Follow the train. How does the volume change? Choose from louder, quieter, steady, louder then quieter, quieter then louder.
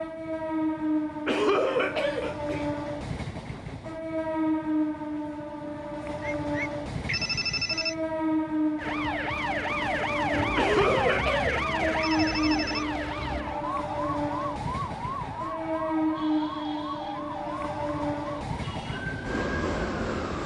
steady.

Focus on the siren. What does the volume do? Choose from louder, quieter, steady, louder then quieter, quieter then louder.
quieter.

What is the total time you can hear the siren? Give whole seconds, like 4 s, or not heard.
12 s.